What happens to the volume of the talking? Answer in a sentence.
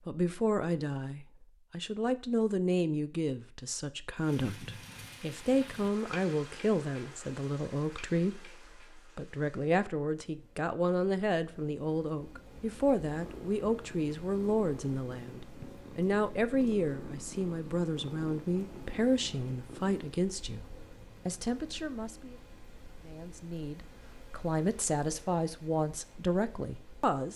The loudness of the talking stays about the same.